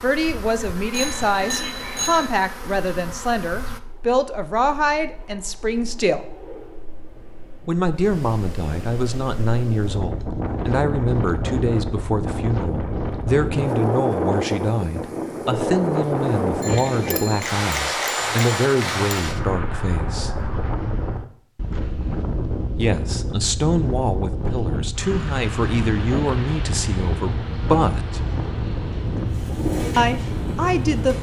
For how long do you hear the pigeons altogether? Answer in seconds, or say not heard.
2 s.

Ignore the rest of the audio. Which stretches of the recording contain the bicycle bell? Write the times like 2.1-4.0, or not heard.
0.9-2.3, 16.6-19.2.